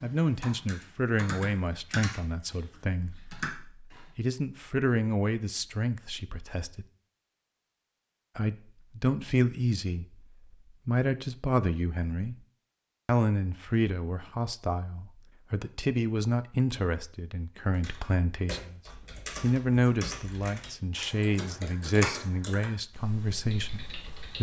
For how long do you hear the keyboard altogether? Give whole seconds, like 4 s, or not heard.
11 s.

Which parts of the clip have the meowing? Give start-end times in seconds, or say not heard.
not heard.